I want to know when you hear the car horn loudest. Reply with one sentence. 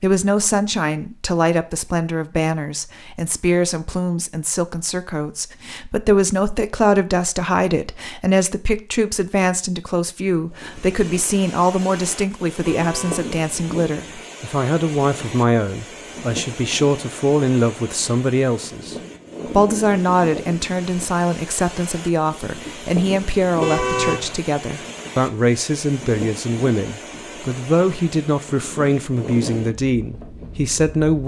The volume of the car horn peaks at 24 seconds.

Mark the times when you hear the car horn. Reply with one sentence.
You can hear the car horn from 12.7 to 13.3 s and from 23.6 to 24.6 s.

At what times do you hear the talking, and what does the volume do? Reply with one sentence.
You can hear the talking from 0.0 to 31.2 s, at a steady volume.